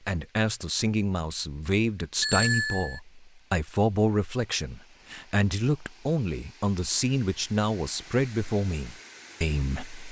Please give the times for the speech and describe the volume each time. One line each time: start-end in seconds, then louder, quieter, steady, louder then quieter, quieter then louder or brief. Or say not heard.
0.1-10.0 steady.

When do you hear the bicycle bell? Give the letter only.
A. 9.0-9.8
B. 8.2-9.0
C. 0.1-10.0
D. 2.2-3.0
D.